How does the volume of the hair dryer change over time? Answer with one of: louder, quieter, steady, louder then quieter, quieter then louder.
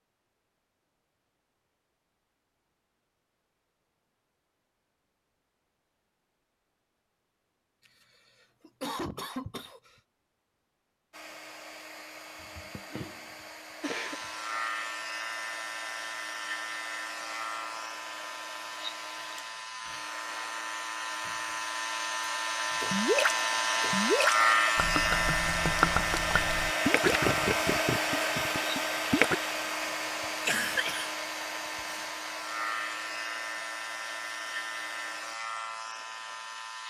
louder then quieter.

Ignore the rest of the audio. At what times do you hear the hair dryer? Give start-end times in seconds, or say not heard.
11.1-35.4.